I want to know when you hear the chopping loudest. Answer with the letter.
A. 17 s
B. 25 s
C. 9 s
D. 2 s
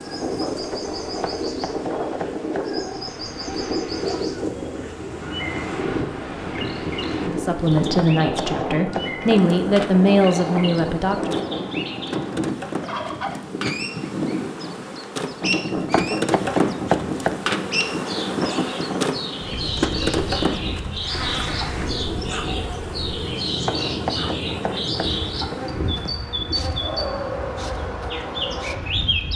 A.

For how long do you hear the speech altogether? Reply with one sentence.
You can hear the speech for 4 seconds altogether.